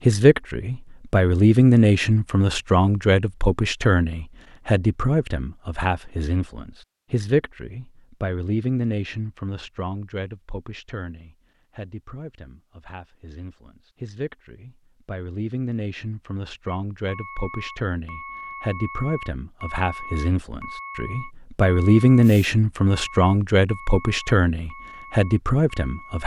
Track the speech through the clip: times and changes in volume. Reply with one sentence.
You can hear the speech from 0.0 to 26.2 s, getting quieter then louder.